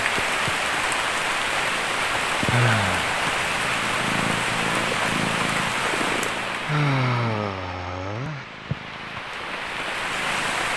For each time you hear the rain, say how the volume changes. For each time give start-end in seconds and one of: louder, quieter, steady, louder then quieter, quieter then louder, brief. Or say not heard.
0.0-10.7 quieter.